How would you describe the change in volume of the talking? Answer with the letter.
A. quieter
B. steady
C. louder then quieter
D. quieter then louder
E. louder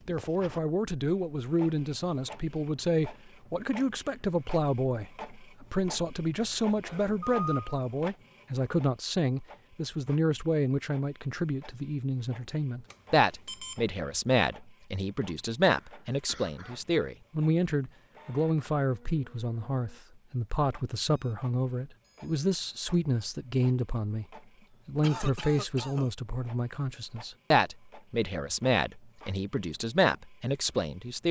B.